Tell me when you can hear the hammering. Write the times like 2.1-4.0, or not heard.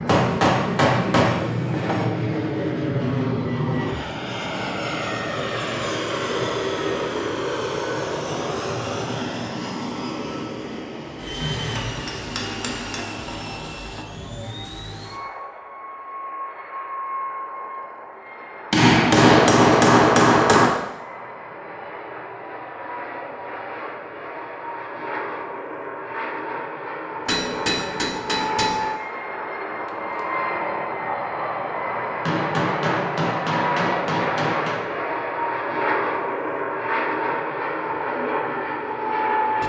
0.1-2.1, 11.4-13.0, 18.7-20.7, 27.2-28.8, 32.2-34.9.